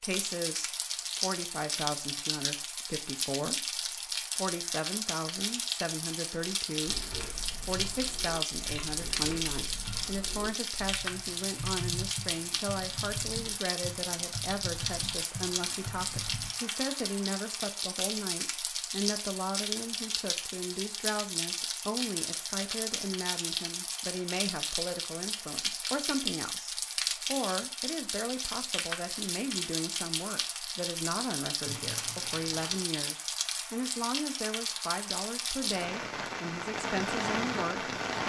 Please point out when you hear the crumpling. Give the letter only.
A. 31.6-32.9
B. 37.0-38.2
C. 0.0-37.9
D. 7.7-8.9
A.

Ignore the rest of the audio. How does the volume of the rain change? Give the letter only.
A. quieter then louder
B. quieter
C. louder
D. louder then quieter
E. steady
E.